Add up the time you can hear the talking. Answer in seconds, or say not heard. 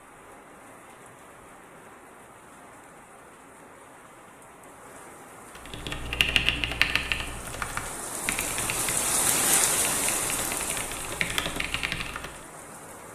not heard.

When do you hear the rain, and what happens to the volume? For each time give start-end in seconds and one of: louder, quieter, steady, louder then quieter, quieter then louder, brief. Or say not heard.
0.0-13.1 louder then quieter.